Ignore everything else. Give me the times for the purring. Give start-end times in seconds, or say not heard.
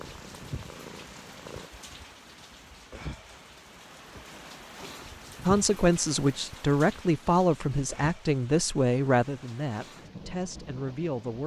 0.0-1.7.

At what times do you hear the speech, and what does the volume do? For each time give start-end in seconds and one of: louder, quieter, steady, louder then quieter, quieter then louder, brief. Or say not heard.
5.5-11.4 quieter.